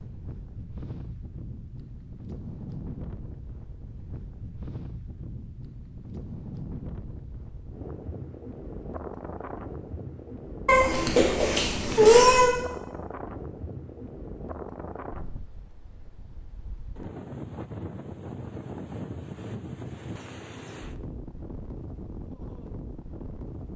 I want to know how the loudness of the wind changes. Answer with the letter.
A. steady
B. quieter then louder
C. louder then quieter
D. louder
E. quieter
A.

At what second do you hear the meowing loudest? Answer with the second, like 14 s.
12 s.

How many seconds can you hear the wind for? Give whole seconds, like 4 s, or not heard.
24 s.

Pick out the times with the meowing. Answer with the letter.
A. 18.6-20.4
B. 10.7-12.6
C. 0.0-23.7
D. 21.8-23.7
B.